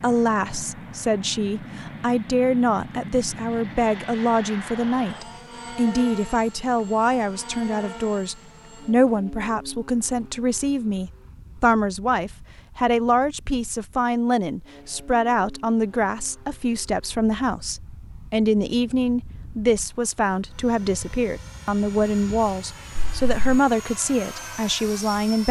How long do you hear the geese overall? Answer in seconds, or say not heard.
not heard.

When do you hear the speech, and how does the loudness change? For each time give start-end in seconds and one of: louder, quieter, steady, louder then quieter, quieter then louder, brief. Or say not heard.
0.0-25.4 steady.